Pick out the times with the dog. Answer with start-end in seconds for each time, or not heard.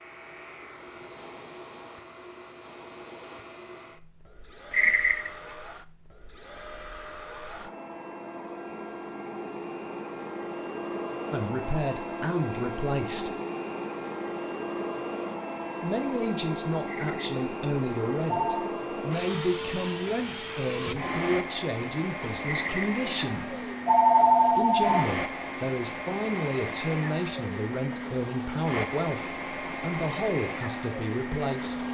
not heard.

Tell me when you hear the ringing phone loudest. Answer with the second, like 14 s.
24 s.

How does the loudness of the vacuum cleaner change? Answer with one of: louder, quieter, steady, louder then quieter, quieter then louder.
louder.